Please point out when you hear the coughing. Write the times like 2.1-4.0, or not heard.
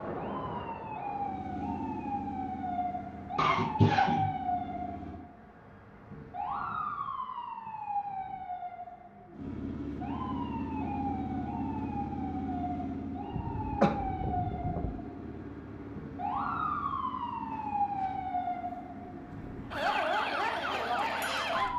3.4-4.3, 13.3-14.9.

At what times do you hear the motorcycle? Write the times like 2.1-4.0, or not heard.
0.0-5.2, 9.3-21.7.